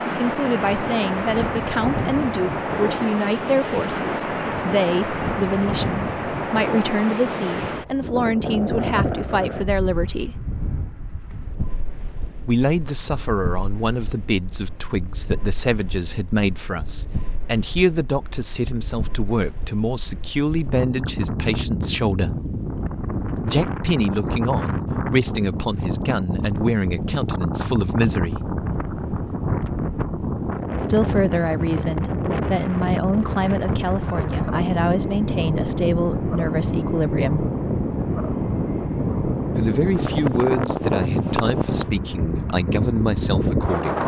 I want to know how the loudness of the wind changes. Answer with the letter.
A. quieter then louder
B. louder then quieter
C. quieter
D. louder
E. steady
A.